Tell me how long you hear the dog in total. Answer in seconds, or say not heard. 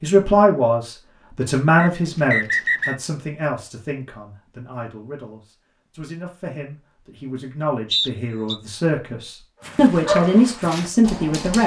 2 s.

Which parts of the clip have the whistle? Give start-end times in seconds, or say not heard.
1.8-3.0, 7.9-8.6.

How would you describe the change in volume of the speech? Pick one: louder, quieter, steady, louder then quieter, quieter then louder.
quieter then louder.